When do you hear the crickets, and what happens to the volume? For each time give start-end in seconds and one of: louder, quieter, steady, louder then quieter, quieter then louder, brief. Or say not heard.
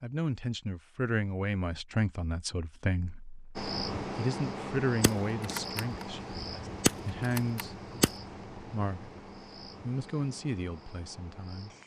3.5-11.8 quieter.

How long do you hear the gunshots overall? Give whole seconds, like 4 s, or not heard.
3 s.